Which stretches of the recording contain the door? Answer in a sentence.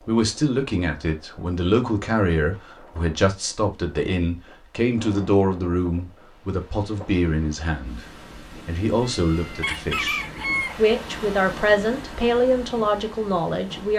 The door can't be heard in this clip.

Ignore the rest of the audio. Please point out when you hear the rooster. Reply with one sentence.
The rooster can be heard from 9.6 to 10.8 s.